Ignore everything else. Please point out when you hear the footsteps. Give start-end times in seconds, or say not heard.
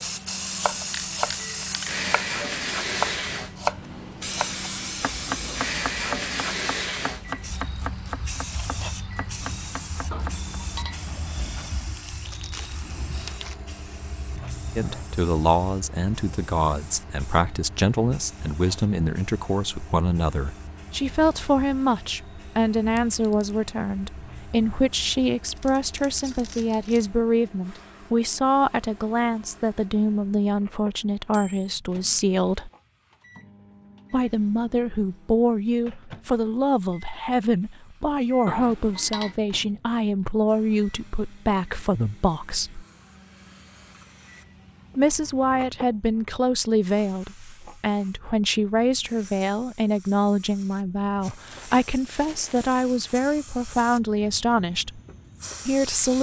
not heard.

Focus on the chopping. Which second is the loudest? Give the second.
4 s.